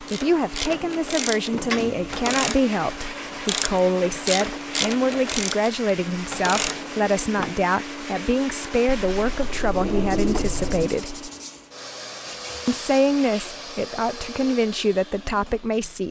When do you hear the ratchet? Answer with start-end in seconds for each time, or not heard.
0.1-7.1.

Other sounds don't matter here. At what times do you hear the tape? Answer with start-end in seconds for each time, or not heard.
not heard.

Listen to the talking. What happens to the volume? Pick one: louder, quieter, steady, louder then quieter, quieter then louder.
steady.